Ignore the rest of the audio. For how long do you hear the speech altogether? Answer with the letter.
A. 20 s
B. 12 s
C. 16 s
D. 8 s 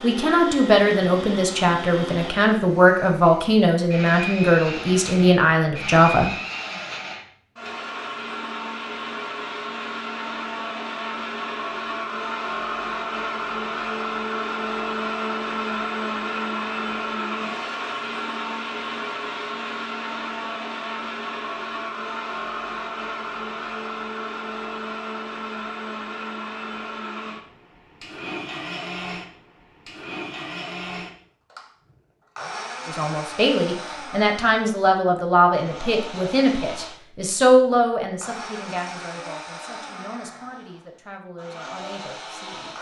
C.